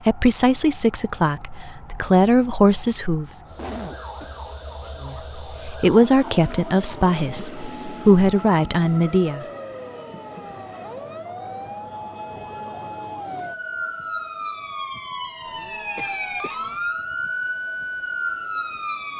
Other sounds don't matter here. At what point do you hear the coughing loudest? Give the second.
4 s.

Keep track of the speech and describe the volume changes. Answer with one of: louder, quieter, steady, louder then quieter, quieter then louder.
steady.